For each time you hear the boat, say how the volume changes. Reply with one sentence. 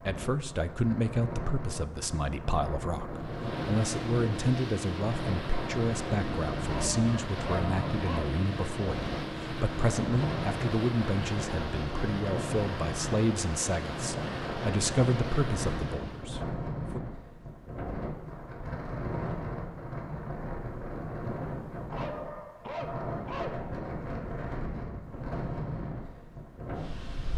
You can hear the boat from 3.1 to 16.3 s, at a steady volume.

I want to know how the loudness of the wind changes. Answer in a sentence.
The volume of the wind stays about the same.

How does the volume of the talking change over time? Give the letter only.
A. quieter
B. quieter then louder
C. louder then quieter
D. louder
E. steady
E.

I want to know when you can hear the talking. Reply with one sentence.
You can hear the talking from 0.1 to 17.0 s.